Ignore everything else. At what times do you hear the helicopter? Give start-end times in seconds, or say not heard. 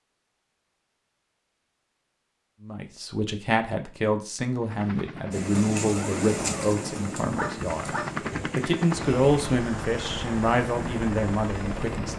4.6-12.1.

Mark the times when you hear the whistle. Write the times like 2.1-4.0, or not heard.
not heard.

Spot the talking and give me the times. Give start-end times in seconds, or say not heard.
2.6-8.0, 8.6-12.1.